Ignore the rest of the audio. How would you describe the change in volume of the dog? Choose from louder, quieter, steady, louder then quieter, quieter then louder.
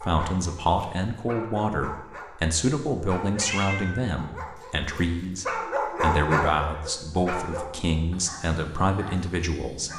louder then quieter.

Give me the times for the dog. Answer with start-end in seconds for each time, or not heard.
0.0-9.9.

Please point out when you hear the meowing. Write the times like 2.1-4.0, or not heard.
3.2-4.2.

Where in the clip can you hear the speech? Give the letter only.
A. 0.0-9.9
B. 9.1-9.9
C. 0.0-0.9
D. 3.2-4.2
A.